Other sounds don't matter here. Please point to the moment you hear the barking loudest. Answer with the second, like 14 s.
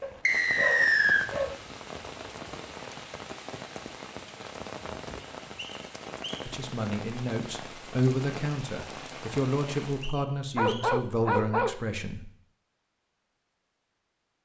11 s.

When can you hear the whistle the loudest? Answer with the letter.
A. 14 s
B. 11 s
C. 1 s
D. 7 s
C.